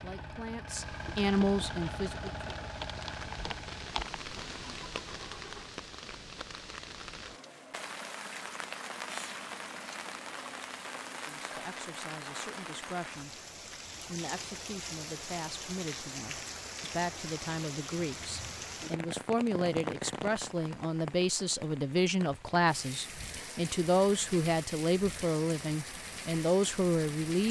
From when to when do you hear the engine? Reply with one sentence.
You can hear the engine from 0.0 to 5.8 s.